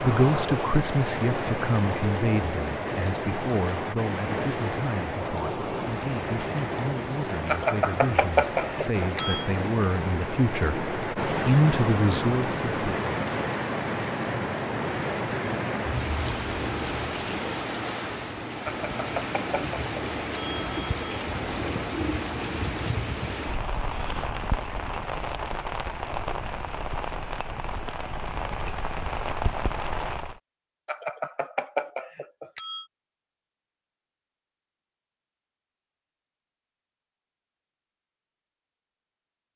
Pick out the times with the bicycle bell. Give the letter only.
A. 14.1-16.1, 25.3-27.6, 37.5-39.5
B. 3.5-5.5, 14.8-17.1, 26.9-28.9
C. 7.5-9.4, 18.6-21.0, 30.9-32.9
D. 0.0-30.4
C.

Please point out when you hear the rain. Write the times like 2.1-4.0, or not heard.
0.0-30.4.